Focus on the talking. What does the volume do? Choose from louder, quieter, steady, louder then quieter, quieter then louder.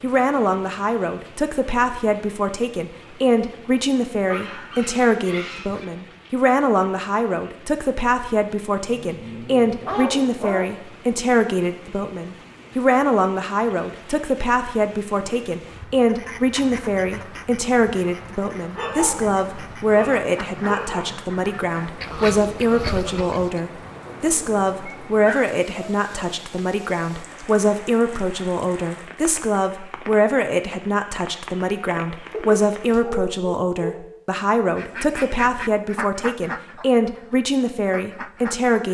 steady.